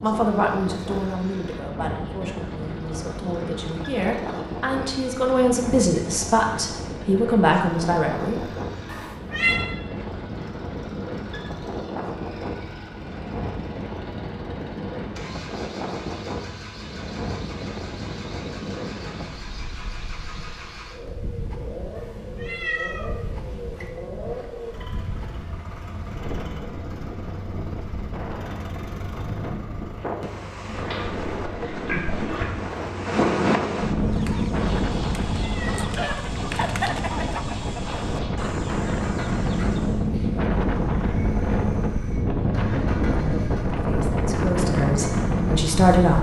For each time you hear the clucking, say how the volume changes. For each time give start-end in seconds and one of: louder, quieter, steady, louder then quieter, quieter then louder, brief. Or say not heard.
34.0-40.1 louder then quieter.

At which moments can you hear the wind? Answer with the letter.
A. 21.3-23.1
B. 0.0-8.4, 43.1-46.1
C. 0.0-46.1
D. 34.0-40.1
C.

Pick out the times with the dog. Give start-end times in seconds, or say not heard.
not heard.